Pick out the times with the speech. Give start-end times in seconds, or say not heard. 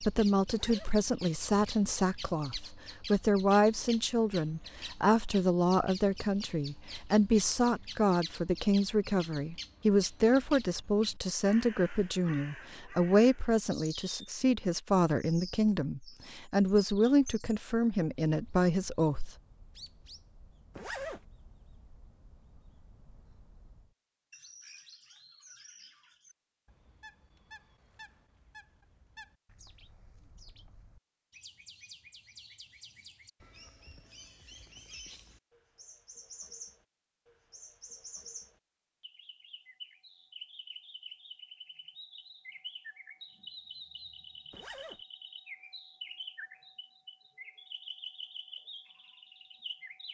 0.0-19.3.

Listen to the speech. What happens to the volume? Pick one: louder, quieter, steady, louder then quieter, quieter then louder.
steady.